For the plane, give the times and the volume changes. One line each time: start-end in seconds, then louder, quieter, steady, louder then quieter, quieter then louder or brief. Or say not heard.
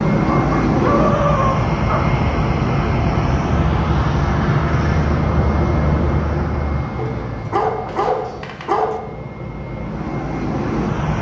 0.0-11.1 quieter.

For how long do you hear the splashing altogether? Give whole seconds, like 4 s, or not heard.
not heard.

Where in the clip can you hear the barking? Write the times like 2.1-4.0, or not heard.
0.2-2.1, 7.0-9.0.